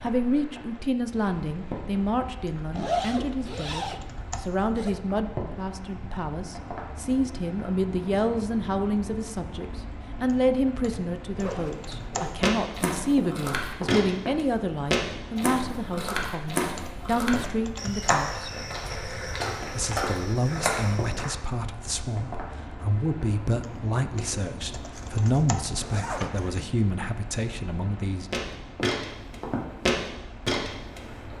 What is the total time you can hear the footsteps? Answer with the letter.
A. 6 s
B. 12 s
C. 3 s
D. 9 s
B.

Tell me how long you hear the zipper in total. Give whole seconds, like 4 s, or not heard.
5 s.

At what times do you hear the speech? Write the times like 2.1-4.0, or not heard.
0.0-18.5, 19.7-28.3.